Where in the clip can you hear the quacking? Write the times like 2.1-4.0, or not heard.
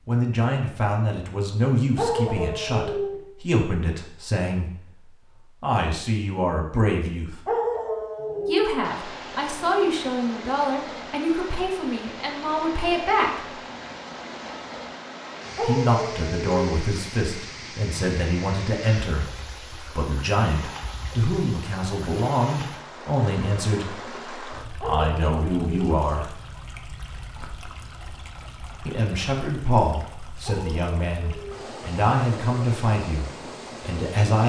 not heard.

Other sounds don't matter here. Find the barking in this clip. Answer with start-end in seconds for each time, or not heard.
1.9-3.1, 7.5-8.7, 15.6-16.6, 24.8-25.9, 30.4-31.6.